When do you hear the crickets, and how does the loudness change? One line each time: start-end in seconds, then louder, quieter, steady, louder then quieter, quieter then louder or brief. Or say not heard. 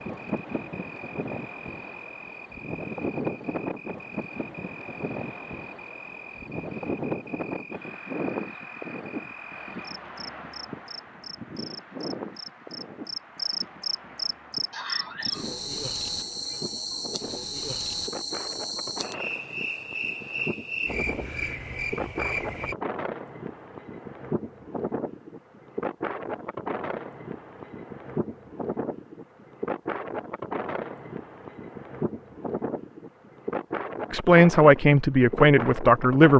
0.0-22.8 louder.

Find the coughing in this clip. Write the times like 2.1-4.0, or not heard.
14.7-15.4.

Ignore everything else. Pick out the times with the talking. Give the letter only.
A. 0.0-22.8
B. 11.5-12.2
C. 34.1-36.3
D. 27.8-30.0
C.